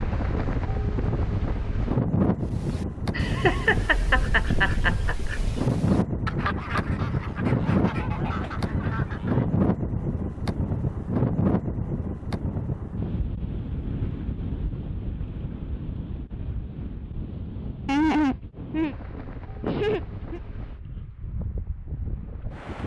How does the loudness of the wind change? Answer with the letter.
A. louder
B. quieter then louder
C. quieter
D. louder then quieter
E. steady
C.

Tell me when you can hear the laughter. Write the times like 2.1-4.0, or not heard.
3.1-5.2, 17.9-20.4.